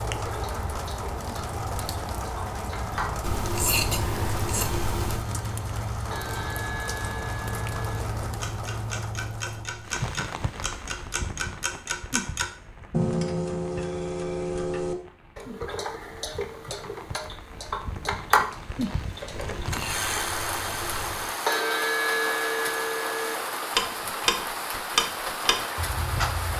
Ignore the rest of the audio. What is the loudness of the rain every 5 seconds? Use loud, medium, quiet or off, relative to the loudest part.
loud, loud, medium, medium, loud, loud.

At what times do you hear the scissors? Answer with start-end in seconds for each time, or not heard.
3.2-5.2, 19.3-21.3.